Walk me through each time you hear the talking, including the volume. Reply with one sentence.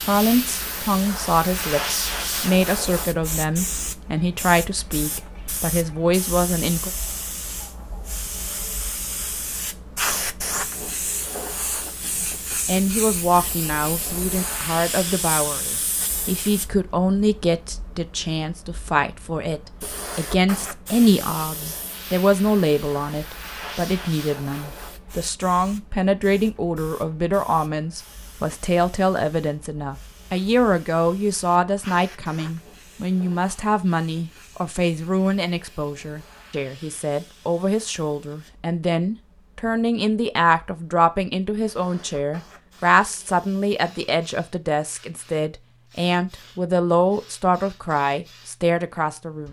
You can hear the talking from 0.0 to 6.9 s, at a steady volume; and from 12.2 to 49.4 s, at a steady volume.